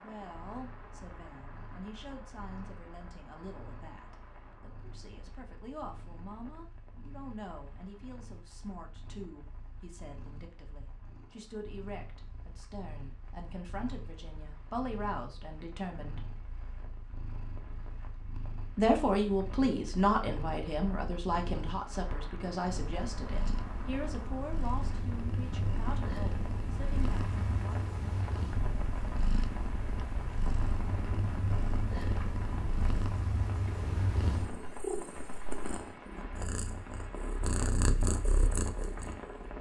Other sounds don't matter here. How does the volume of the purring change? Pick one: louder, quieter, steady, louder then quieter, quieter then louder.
louder.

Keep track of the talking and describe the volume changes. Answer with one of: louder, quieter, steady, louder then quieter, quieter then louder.
louder then quieter.